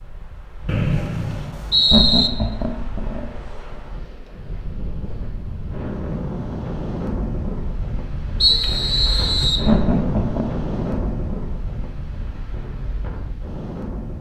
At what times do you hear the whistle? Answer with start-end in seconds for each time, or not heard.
0.7-2.3, 8.4-9.7.